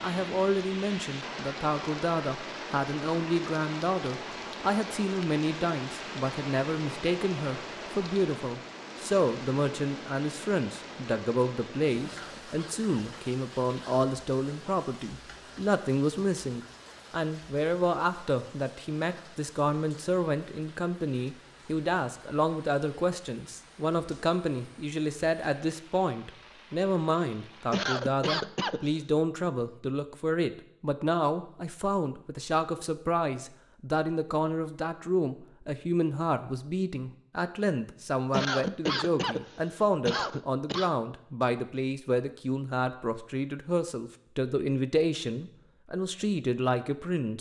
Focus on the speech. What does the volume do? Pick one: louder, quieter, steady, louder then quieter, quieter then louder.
steady.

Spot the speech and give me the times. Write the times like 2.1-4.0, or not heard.
0.0-47.3.